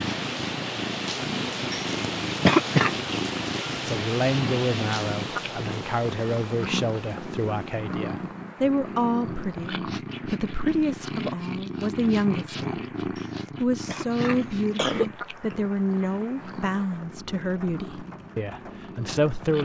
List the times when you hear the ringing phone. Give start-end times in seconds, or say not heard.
not heard.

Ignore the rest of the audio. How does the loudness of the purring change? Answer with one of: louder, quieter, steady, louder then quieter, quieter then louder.
quieter.